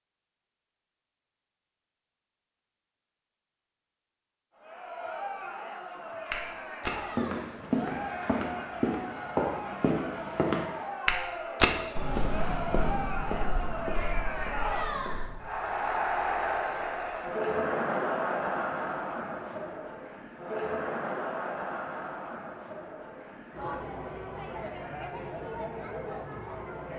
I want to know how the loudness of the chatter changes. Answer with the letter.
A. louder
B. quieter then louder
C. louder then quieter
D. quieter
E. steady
C.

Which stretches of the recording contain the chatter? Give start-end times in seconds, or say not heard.
4.5-26.9.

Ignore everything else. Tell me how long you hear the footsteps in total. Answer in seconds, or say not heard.
9 s.